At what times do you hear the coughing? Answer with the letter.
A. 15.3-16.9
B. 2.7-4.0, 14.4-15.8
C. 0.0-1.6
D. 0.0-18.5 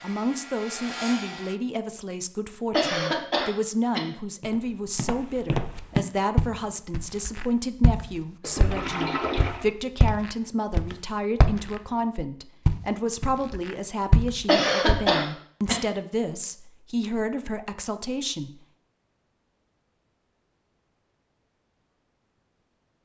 B.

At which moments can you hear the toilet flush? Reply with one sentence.
The toilet flush can be heard from 8.4 to 9.7 s.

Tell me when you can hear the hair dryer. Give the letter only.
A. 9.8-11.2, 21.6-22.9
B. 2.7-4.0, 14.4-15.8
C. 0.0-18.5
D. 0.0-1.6
D.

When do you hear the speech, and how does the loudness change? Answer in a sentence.
You can hear the speech from 0.0 to 18.5 s, at a steady volume.